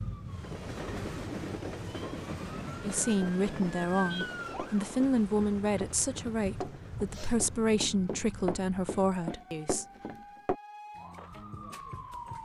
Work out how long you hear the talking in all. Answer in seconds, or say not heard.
7 s.